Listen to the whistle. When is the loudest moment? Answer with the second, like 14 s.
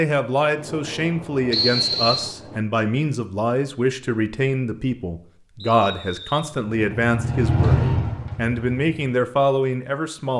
2 s.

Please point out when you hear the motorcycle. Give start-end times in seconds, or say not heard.
6.5-9.2.